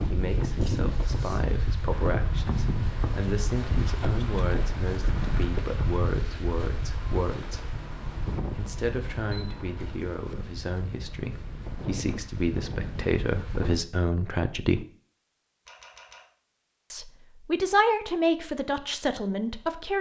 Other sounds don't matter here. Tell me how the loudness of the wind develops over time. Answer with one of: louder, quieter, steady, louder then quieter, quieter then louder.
quieter.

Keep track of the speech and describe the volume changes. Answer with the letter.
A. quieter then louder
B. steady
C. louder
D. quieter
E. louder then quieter
C.